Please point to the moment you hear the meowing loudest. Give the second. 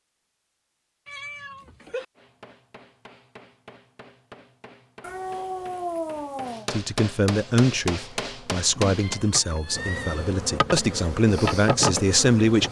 6 s.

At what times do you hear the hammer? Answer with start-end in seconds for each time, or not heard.
2.1-9.2.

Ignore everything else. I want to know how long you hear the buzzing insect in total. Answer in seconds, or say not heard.
5 s.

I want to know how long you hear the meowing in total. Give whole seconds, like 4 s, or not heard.
4 s.